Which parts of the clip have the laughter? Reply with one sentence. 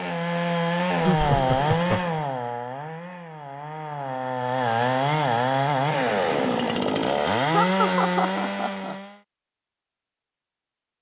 You can hear the laughter from 1.0 to 2.2 s and from 7.5 to 8.9 s.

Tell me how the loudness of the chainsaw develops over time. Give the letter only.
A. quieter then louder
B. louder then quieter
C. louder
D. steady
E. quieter
A.